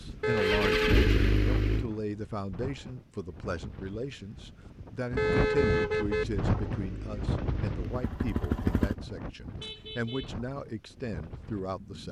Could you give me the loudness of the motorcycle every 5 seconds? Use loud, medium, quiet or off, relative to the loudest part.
loud, medium, off.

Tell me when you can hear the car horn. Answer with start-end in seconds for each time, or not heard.
0.2-1.1, 5.2-6.2, 9.6-10.3.